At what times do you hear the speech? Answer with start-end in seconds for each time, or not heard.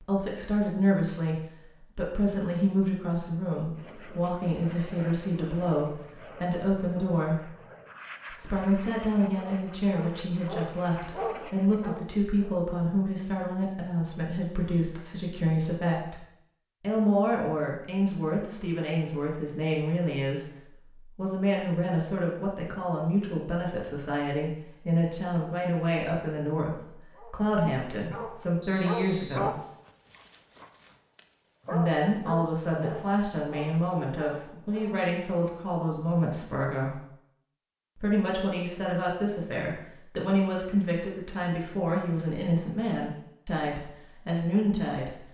0.0-7.5, 8.3-29.6, 31.7-37.0, 38.0-45.2.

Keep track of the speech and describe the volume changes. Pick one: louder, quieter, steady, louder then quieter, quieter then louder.
steady.